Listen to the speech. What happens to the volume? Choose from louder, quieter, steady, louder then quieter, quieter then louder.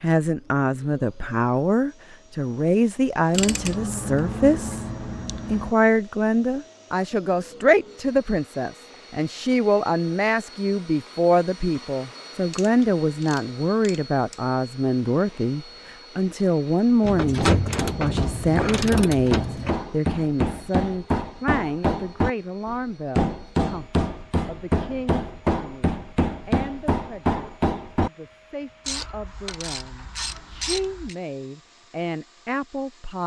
quieter.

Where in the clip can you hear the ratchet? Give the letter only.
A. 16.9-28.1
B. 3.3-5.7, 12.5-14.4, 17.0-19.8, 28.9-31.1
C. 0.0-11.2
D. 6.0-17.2
B.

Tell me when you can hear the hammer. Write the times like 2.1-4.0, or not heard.
16.9-28.1.